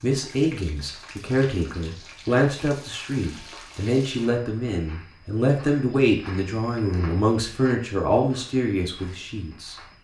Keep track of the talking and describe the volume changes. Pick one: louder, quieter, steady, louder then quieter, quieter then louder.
steady.